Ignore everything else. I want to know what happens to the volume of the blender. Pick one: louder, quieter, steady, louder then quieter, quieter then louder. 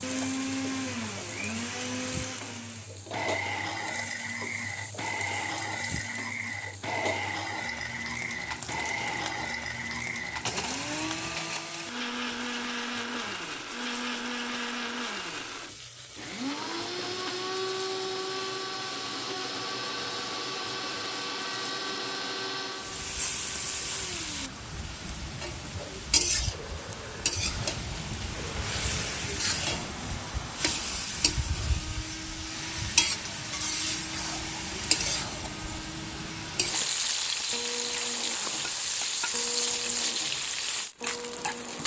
quieter.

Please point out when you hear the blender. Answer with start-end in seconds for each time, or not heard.
0.0-41.8.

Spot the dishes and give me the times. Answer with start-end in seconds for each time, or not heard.
not heard.